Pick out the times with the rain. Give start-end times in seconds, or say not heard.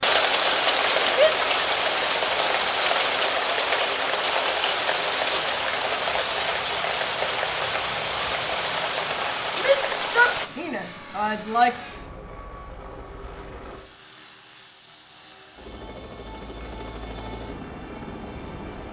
0.0-10.5.